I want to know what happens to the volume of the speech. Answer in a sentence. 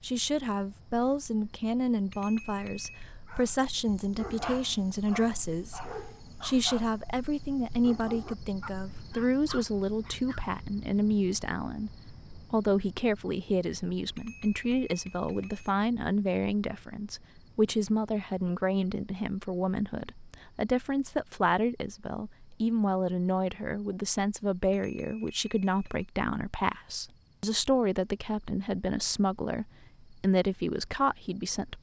The loudness of the speech stays about the same.